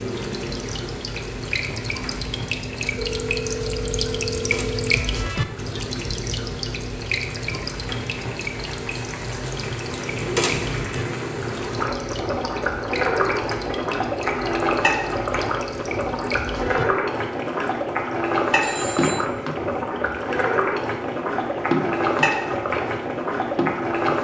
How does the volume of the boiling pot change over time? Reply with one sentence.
The volume of the boiling pot goes up.